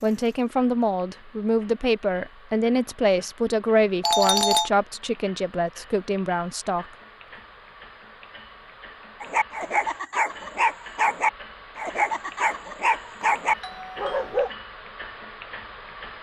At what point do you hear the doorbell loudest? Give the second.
4 s.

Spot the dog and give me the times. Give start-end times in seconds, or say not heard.
9.2-14.5.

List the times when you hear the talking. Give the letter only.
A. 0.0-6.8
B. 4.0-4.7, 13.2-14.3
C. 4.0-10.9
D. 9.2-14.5
A.